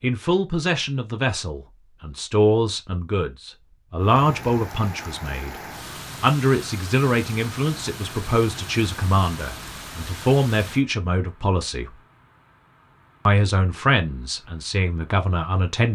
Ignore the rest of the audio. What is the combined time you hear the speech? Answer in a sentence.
You can hear the speech for 14 seconds altogether.